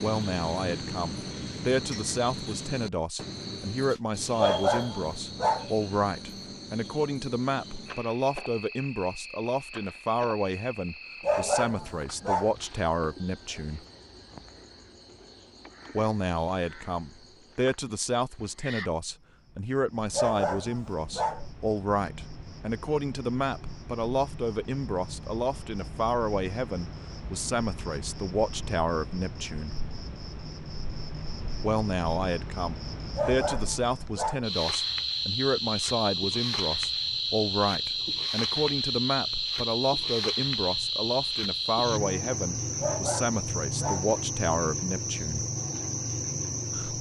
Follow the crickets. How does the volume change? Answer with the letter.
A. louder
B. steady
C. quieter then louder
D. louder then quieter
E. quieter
C.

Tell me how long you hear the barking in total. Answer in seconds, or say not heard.
7 s.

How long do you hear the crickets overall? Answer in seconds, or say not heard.
47 s.